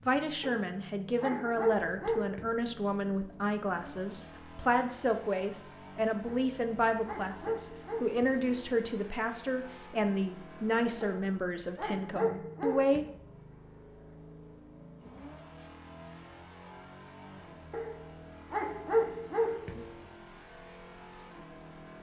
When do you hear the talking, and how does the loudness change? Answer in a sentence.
The talking can be heard from 0.1 to 13.1 s, at a steady volume.